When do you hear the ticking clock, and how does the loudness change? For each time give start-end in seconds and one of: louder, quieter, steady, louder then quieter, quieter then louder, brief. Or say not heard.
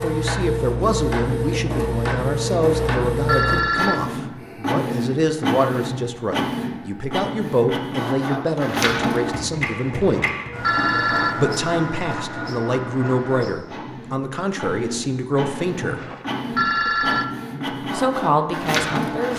not heard.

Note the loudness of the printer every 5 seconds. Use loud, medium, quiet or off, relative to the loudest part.
loud, loud, medium, loud.